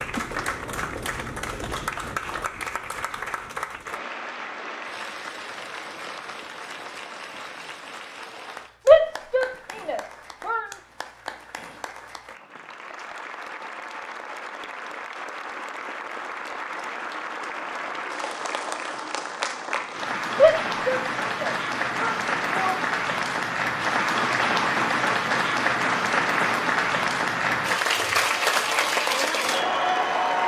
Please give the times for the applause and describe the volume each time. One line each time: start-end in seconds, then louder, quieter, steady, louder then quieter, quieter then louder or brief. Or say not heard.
0.0-30.4 quieter then louder.